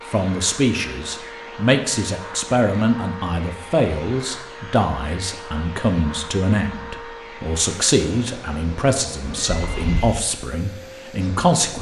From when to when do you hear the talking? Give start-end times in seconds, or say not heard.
0.1-11.7.